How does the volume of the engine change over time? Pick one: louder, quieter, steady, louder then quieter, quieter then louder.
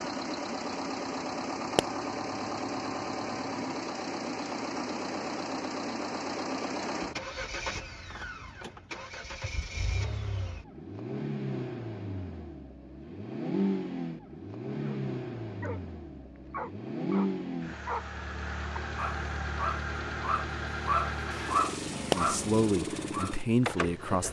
steady.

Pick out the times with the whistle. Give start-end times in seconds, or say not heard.
not heard.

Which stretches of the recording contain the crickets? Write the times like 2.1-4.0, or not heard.
not heard.